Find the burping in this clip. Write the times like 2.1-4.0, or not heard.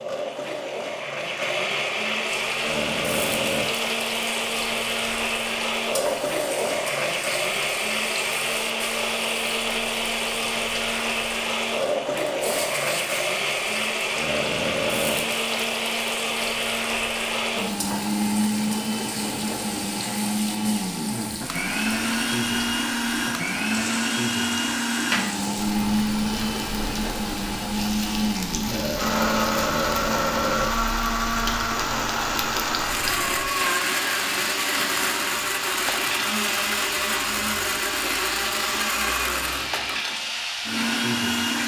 2.6-3.7, 14.2-15.3, 28.7-30.7.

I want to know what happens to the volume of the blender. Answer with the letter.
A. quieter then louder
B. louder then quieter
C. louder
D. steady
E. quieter
D.